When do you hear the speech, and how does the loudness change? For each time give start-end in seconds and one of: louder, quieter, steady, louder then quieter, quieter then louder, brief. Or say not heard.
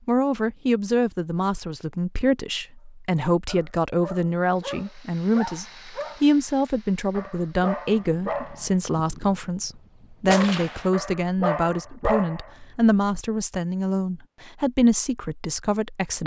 0.1-16.2 steady.